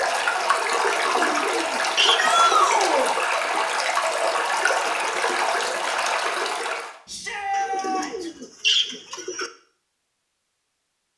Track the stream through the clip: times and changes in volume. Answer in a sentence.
The stream can be heard from 0.0 to 7.0 s, at a steady volume.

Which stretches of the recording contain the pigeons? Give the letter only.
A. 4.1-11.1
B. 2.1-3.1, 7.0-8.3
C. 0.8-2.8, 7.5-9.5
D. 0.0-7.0
C.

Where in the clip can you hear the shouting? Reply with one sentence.
You can hear the shouting from 2.1 to 3.1 s and from 7.0 to 8.3 s.